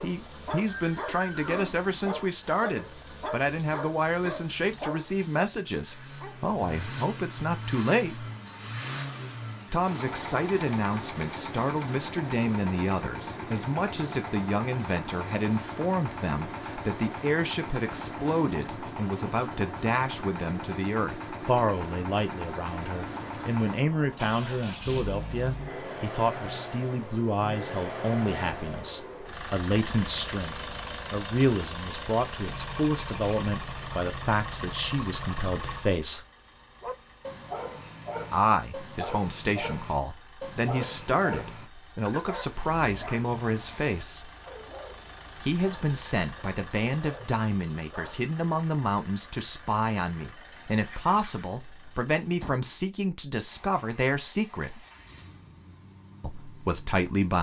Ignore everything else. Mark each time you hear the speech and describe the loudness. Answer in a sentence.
You can hear the speech from 0.0 to 8.2 s, at a steady volume; from 9.7 to 36.2 s, at a steady volume; from 38.3 to 44.3 s, at a steady volume; from 45.4 to 54.9 s, at a steady volume; and briefly from 56.2 to 57.3 s.